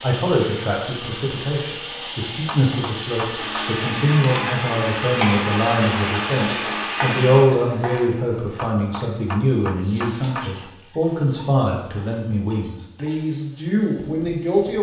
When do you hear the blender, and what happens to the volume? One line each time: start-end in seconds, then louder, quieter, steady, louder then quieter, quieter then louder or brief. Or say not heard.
0.0-7.5 louder.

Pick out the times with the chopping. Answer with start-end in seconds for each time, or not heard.
2.2-3.7, 8.6-10.8.